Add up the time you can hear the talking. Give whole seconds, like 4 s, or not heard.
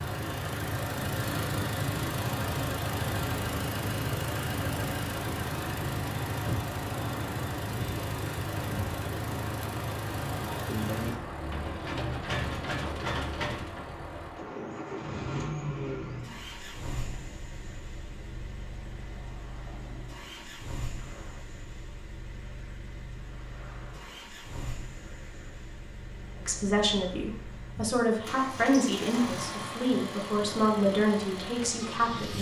6 s.